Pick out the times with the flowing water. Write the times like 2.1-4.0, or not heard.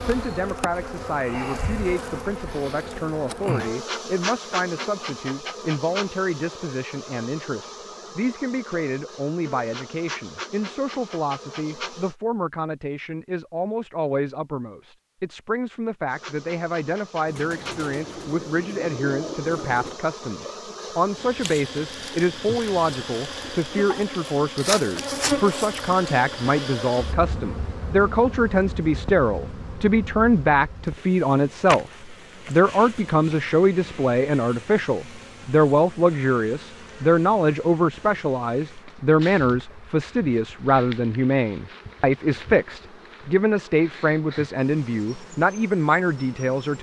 not heard.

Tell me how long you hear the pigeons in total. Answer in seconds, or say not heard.
3 s.